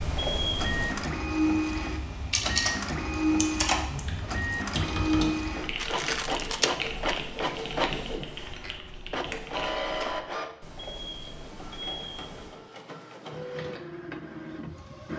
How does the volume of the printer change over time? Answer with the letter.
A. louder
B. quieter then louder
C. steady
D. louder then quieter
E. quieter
E.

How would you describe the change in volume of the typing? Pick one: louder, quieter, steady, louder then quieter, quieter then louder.
quieter.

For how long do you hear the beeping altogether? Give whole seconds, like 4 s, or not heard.
3 s.